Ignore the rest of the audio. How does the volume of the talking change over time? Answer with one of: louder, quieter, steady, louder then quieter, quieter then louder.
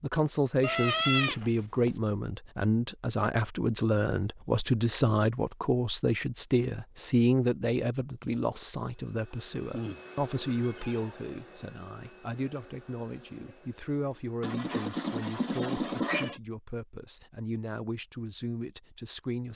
quieter.